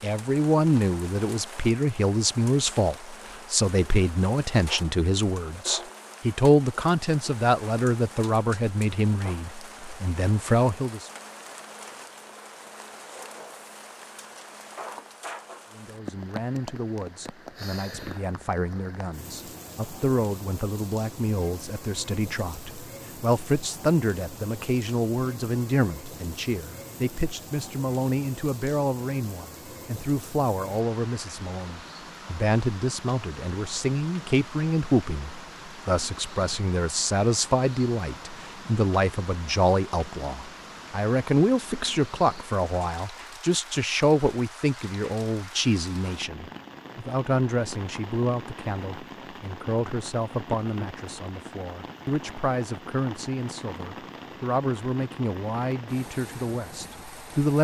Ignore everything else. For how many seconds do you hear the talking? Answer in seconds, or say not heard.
53 s.